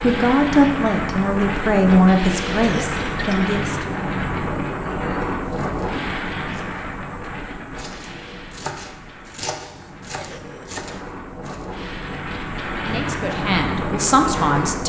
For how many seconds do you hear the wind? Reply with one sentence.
You can hear the wind for 15 seconds altogether.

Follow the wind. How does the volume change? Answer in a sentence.
The volume of the wind goes down, then up.